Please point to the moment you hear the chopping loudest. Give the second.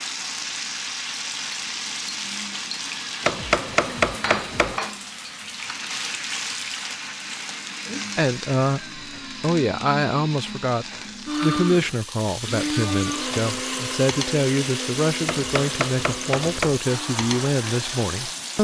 4 s.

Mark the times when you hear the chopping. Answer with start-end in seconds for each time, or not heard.
3.2-4.8, 15.2-16.8.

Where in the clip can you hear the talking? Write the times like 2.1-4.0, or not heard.
8.2-18.5.